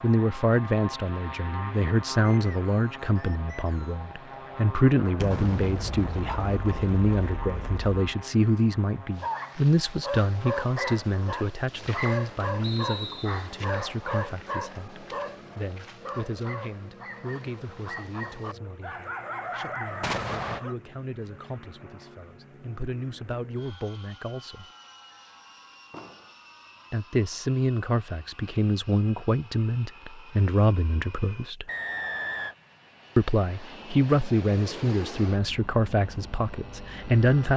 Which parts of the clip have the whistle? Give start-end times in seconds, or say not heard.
2.2-4.0, 12.6-13.5, 31.6-32.5.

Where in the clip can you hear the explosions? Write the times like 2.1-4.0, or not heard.
5.2-8.0, 20.0-20.6, 25.9-26.3.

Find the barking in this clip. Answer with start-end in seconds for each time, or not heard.
9.2-20.8.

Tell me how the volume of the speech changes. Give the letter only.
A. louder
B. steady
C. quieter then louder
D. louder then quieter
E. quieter
C.